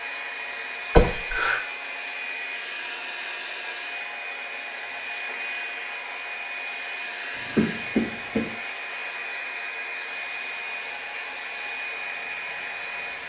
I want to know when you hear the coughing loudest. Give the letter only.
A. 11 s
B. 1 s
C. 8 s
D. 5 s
B.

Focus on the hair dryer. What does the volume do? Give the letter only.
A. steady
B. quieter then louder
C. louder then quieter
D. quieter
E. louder
A.